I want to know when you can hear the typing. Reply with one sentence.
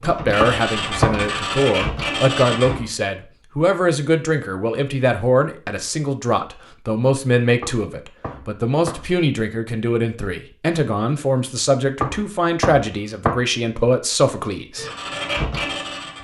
You can't hear the typing here.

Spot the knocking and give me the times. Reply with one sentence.
You can hear the knocking from 0.4 to 1.3 s, from 7.6 to 9.2 s and from 12.0 to 13.4 s.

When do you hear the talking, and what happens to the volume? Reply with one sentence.
The talking can be heard from 0.0 to 14.8 s, at a steady volume.